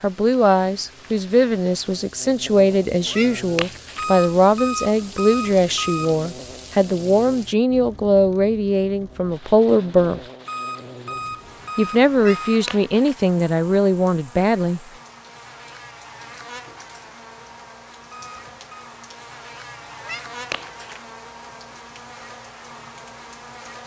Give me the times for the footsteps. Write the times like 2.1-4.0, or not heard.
not heard.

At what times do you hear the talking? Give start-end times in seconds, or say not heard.
0.0-10.2, 11.8-14.8.